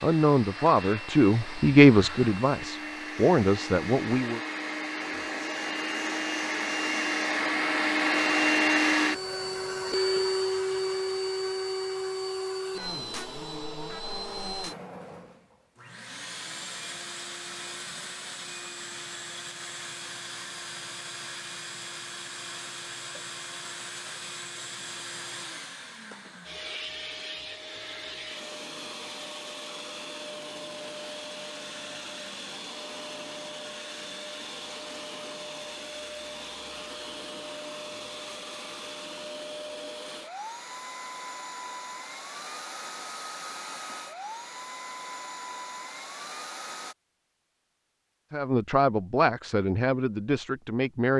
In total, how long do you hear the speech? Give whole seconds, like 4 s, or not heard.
7 s.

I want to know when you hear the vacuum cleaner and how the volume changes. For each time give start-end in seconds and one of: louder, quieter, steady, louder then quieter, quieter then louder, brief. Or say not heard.
0.0-47.0 quieter.